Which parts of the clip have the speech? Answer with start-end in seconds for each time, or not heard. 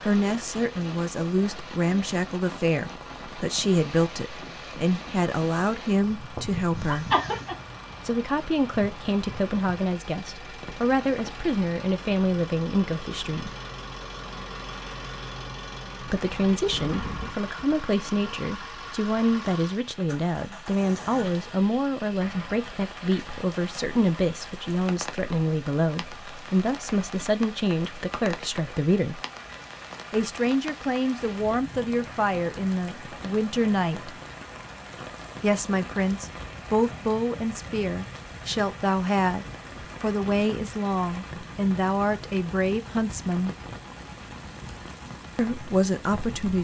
0.0-7.0, 8.1-13.5, 16.0-29.2, 30.1-34.1, 35.4-43.5, 45.4-46.5.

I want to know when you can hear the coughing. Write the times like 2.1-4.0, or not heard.
6.3-7.5.